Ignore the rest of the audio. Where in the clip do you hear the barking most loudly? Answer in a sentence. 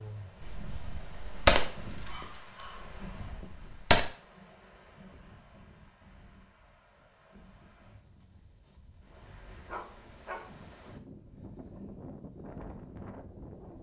The volume of the barking peaks at 10 seconds.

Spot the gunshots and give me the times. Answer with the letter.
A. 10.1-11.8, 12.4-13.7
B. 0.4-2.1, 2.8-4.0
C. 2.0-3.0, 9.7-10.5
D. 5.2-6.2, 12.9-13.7
B.